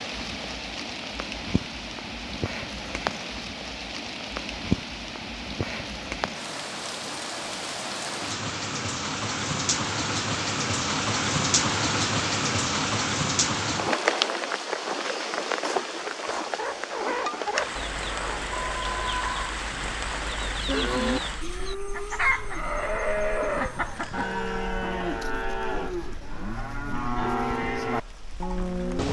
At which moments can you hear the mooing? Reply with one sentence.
The mooing can be heard from 20.5 to 29.0 s.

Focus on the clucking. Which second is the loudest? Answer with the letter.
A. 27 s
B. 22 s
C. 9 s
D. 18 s
B.